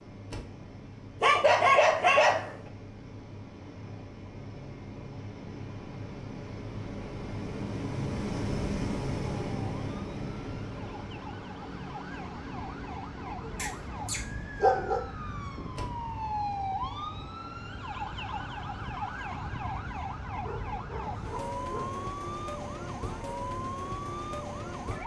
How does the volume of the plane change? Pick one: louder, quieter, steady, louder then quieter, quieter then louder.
louder then quieter.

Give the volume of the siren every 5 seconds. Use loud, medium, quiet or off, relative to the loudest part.
off, off, medium, loud, loud.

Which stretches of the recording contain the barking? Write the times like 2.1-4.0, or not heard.
1.2-2.5, 13.4-15.0, 20.4-22.1.